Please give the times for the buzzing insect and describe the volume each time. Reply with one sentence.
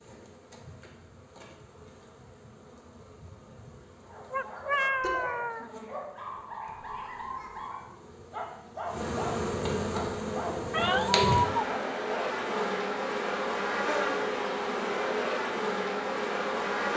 You can hear the buzzing insect from 0.0 to 16.9 s, getting louder.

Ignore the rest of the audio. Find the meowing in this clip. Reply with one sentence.
The meowing can be heard from 4.3 to 5.8 s and from 10.7 to 11.7 s.